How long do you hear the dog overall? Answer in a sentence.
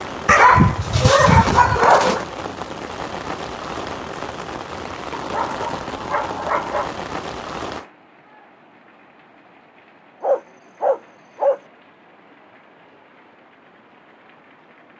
The dog can be heard for 5 seconds in total.